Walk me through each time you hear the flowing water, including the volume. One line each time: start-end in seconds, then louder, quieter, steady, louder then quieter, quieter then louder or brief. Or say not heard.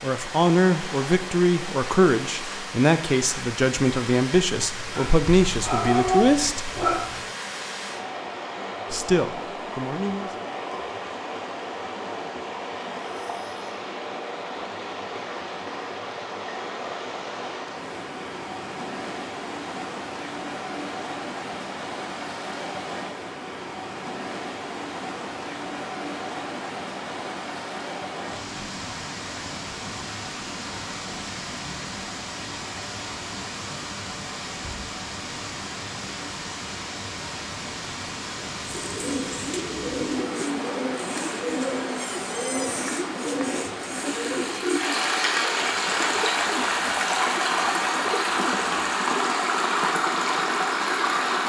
0.0-51.4 louder.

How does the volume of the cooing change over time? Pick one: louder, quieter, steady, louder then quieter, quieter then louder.
quieter.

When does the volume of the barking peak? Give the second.
6 s.